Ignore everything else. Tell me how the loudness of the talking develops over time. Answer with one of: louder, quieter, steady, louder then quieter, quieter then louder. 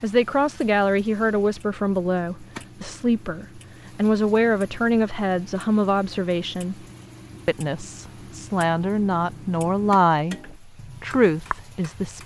steady.